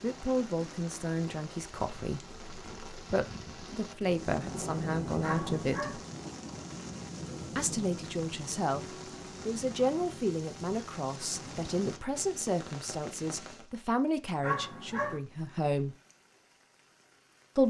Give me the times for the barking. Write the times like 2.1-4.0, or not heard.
5.2-6.0, 14.4-15.2.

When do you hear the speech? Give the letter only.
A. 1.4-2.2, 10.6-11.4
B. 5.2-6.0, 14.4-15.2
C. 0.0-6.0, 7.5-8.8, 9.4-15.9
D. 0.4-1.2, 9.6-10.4
C.